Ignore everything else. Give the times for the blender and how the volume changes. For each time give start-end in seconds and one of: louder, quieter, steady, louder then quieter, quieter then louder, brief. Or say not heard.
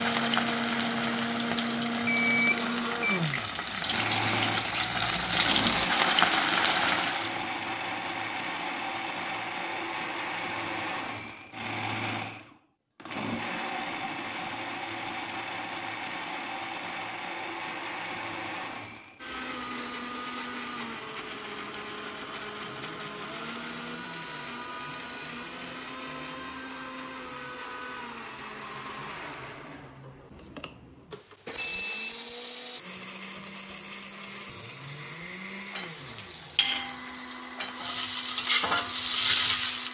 0.0-39.8 quieter.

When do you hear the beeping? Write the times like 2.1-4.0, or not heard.
2.0-3.2, 31.1-32.2.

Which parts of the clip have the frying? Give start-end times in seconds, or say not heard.
0.0-7.4, 35.5-39.8.